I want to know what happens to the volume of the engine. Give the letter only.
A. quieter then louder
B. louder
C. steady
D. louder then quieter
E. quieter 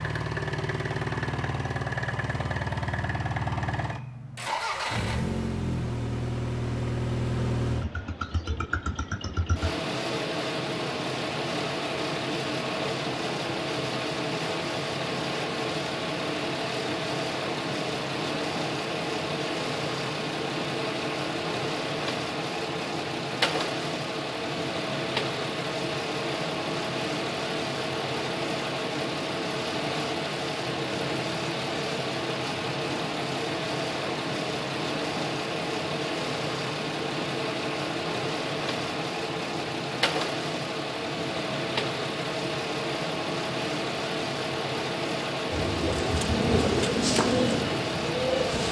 C.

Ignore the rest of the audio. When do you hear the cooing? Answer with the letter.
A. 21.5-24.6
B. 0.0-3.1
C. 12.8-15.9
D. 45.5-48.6
D.